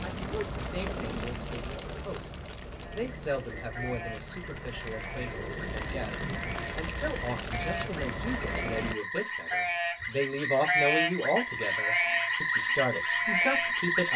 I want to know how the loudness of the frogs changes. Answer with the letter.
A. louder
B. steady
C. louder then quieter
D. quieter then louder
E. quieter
A.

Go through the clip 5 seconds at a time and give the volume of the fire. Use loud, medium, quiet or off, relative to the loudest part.
loud, loud, off.